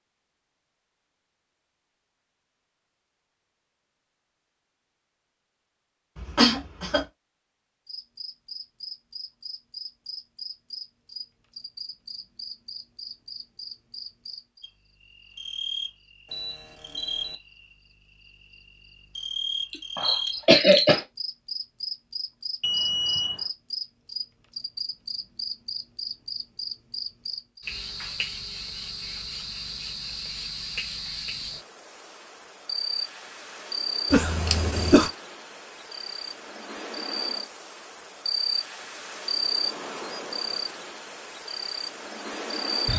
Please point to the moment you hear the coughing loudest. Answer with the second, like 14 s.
21 s.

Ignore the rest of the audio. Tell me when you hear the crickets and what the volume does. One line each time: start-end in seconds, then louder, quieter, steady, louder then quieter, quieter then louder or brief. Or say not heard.
7.8-42.9 louder.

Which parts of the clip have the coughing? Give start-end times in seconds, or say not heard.
6.2-7.0, 19.7-21.0, 34.1-35.1.